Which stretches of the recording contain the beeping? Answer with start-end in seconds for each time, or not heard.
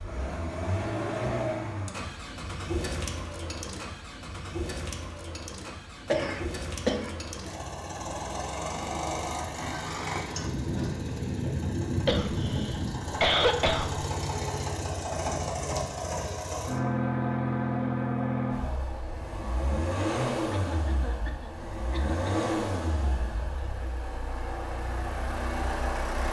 not heard.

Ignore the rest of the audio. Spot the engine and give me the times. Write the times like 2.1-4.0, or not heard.
0.0-26.2.